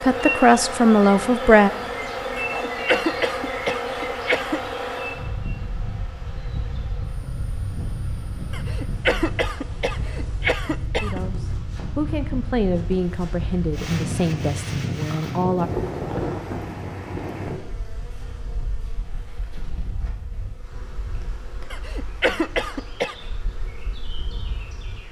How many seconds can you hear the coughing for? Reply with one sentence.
You can hear the coughing for 6 seconds altogether.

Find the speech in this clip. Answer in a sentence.
You can hear the speech from 0.0 to 1.7 s and from 11.0 to 15.7 s.